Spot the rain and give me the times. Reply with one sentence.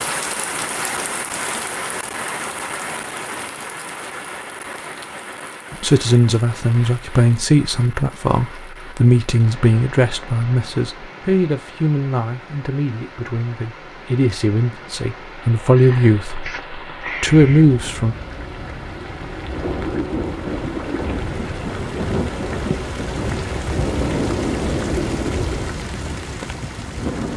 You can hear the rain from 0.0 to 27.3 s.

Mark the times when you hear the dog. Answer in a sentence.
The dog can't be heard in this clip.